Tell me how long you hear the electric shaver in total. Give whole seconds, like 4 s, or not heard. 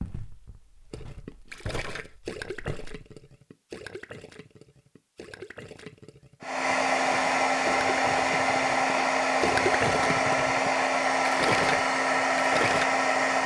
not heard.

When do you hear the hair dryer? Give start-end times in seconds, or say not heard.
6.4-13.4.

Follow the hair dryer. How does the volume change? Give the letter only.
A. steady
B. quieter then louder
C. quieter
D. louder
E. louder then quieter
A.